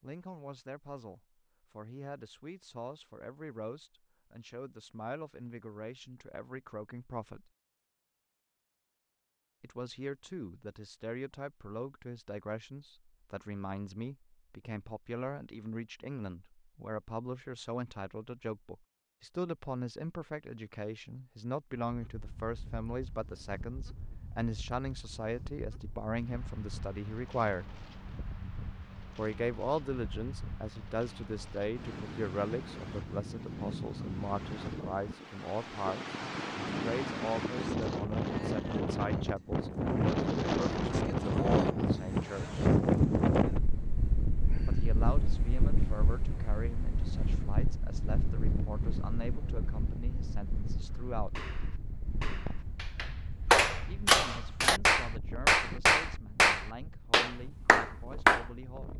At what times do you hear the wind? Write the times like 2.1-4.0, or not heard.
21.8-58.9.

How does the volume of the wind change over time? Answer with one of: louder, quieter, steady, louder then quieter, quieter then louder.
louder then quieter.